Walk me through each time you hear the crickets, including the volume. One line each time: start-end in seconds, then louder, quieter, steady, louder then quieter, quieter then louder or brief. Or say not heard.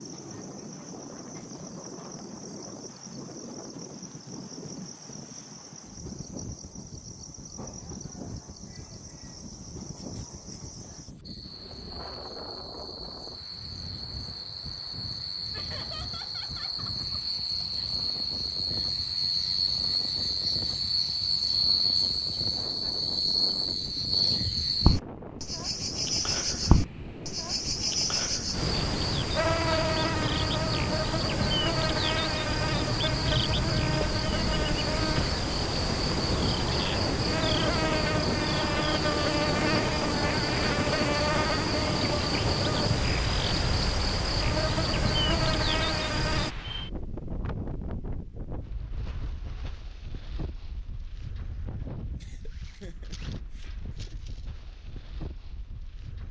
0.0-46.5 louder.